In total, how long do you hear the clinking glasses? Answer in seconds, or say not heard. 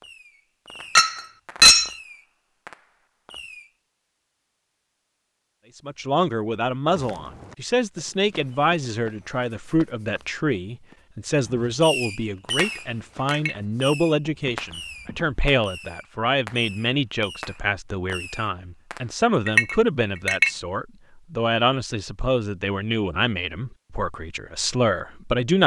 3 s.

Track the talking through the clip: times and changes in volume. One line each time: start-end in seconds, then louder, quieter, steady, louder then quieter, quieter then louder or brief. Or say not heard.
5.8-25.6 steady.